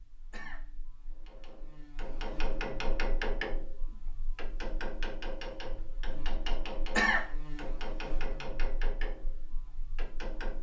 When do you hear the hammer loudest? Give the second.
3 s.